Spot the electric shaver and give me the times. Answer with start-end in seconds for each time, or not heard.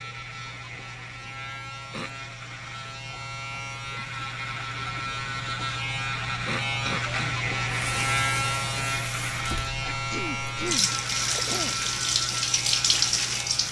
0.0-13.6.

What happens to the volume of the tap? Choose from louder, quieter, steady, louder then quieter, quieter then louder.
louder.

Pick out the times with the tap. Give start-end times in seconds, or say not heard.
7.7-13.6.